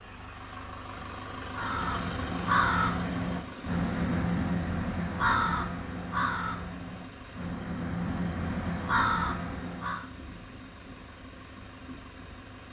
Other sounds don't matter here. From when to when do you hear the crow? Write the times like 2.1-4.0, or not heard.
1.5-10.1.